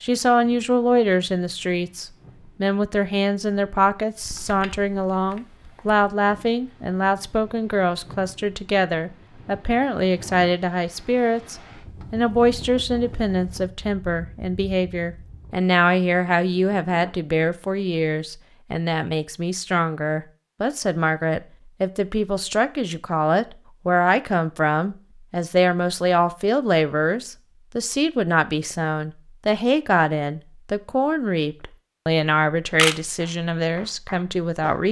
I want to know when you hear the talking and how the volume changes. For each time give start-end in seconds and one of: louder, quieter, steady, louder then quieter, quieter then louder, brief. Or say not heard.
0.0-34.8 steady.